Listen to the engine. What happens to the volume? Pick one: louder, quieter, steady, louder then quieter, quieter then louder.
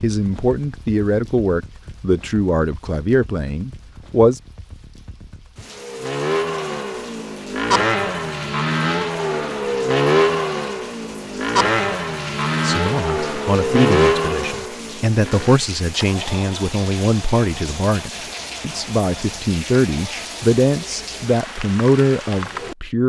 quieter.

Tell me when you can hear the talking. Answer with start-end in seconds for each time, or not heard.
0.0-4.4, 12.6-23.0.